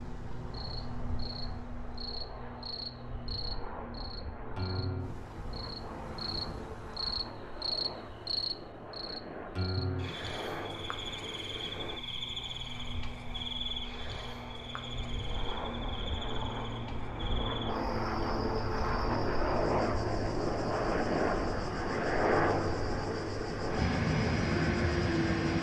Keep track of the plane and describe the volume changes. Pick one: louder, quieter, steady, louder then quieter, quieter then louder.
louder.